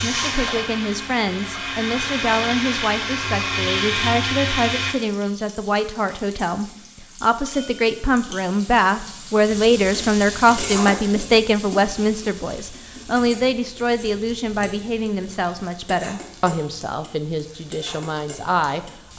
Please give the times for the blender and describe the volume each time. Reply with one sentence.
You can hear the blender from 0.0 to 5.0 s, getting louder.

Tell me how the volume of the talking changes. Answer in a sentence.
The volume of the talking goes up, then down.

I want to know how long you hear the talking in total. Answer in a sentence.
The talking can be heard for 19 seconds in total.